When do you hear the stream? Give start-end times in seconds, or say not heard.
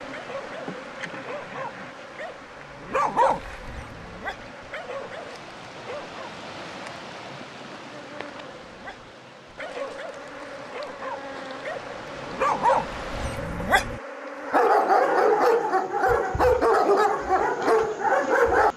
0.0-13.5.